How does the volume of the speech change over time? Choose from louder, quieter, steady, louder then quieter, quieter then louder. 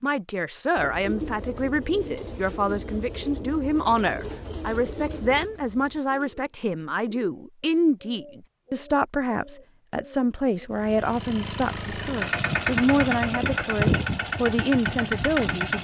steady.